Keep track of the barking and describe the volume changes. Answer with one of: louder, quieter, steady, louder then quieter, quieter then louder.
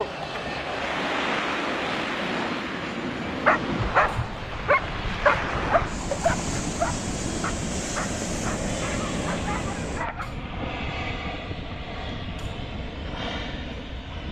quieter.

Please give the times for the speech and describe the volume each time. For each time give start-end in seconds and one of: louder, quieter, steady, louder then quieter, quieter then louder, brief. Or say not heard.
not heard.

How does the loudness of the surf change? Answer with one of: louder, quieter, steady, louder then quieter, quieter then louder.
steady.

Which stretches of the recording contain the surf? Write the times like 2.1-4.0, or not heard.
0.0-10.1.